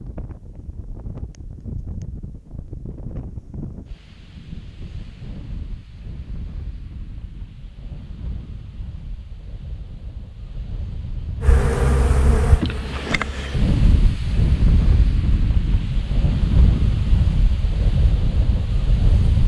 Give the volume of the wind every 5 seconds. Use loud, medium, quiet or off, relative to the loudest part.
quiet, quiet, loud, loud.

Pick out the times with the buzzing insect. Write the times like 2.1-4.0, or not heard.
11.4-13.7.